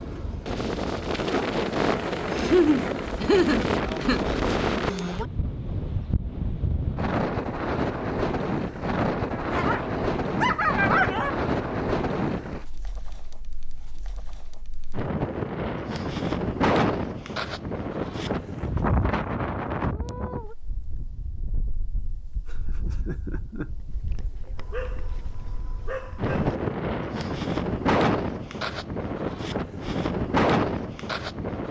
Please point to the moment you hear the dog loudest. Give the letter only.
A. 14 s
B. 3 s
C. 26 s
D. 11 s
D.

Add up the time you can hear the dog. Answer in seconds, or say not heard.
4 s.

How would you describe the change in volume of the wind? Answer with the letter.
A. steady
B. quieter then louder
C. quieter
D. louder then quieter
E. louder
B.